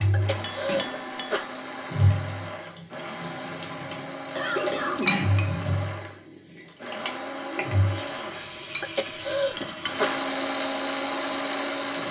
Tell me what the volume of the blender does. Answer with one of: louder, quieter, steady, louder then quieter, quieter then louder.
louder.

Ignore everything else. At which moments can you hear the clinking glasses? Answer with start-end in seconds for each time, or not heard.
0.4-1.4, 4.7-5.6, 8.7-10.1.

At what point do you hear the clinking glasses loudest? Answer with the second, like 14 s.
5 s.